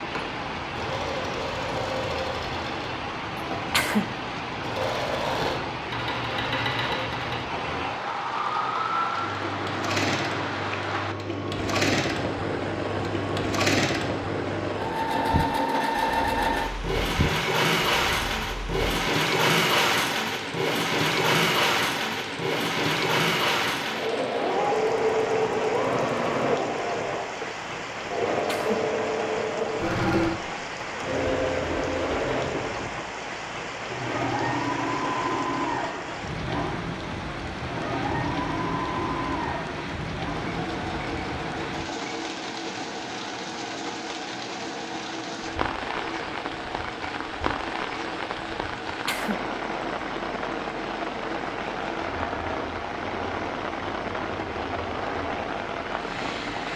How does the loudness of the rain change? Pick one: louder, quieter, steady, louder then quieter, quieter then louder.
steady.